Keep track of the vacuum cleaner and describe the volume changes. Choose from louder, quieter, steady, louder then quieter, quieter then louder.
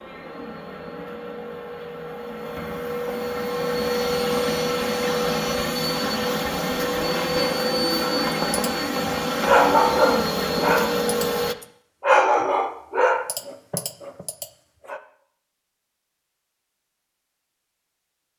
louder.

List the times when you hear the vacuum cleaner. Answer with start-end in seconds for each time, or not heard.
0.0-11.6.